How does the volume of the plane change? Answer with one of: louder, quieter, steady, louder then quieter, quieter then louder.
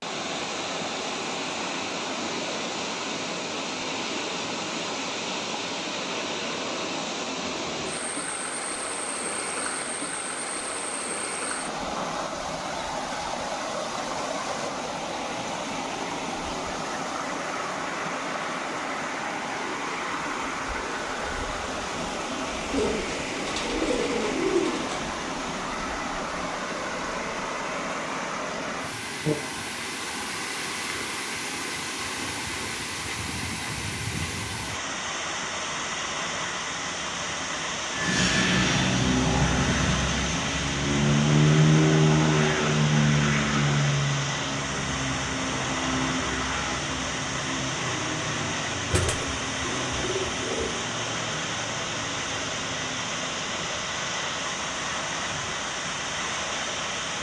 quieter.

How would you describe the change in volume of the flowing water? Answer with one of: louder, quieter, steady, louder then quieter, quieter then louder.
steady.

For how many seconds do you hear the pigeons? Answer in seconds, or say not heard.
4 s.